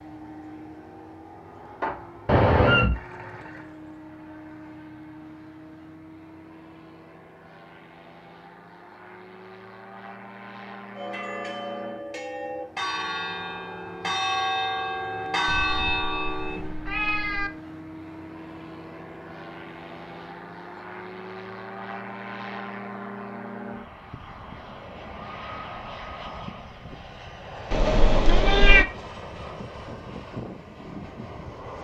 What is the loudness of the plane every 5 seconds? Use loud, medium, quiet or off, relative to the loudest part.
medium, medium, medium, loud, loud, loud, loud.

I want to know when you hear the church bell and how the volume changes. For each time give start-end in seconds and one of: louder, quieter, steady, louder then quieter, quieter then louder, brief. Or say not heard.
10.9-16.8 louder.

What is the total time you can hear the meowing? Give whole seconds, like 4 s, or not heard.
4 s.